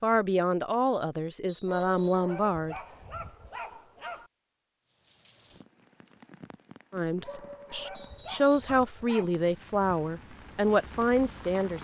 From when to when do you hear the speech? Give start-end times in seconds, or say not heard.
0.0-2.8, 6.9-11.7.